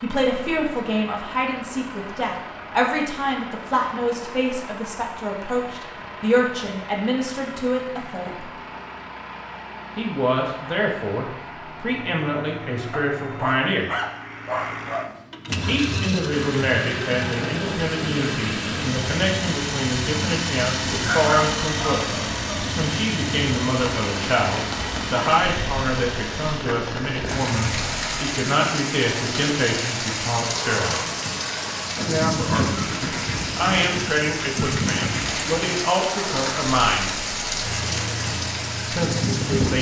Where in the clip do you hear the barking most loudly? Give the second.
21 s.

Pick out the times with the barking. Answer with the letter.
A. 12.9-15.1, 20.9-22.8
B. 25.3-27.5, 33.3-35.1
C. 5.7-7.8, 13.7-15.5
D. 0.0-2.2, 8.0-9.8
A.